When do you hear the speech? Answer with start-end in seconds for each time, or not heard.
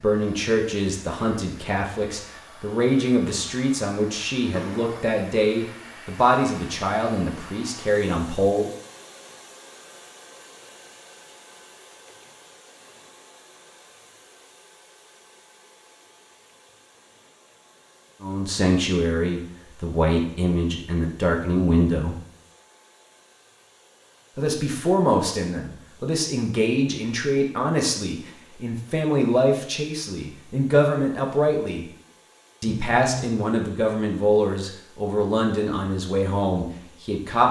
0.0-8.7, 18.2-22.1, 24.4-31.9, 32.6-37.4.